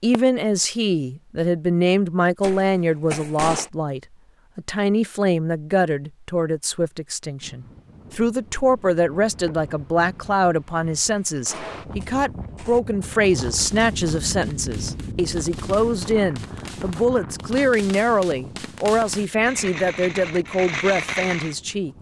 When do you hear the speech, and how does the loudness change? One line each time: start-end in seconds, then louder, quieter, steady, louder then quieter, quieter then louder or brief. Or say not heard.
0.0-21.9 steady.